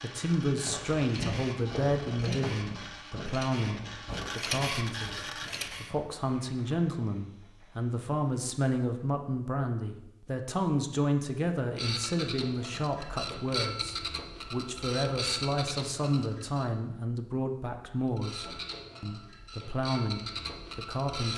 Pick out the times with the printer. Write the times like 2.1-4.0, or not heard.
0.0-5.9, 11.7-16.7, 18.1-21.3.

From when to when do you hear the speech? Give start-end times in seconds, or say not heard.
0.0-21.3.